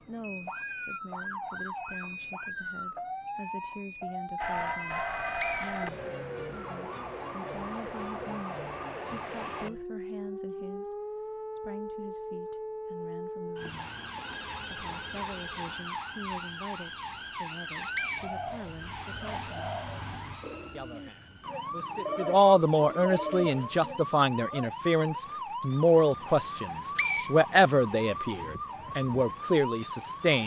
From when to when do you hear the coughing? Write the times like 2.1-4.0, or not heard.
not heard.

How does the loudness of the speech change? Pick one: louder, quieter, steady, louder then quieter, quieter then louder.
louder.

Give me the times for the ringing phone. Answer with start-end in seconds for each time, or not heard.
4.3-5.9, 13.6-15.8, 22.1-23.8.